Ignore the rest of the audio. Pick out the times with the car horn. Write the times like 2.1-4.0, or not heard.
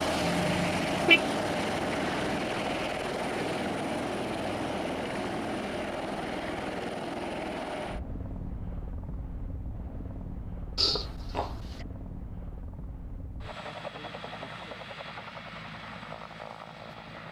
0.2-1.2.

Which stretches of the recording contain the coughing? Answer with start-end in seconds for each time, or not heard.
10.8-11.8.